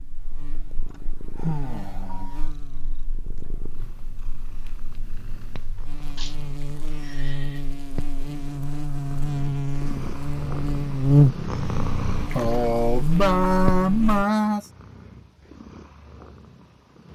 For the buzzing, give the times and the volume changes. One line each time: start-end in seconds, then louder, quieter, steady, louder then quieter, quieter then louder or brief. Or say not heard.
0.0-14.2 quieter then louder.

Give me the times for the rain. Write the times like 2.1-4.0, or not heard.
not heard.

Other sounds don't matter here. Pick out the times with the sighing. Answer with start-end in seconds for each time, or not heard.
1.4-2.4, 6.2-7.6, 12.3-14.7.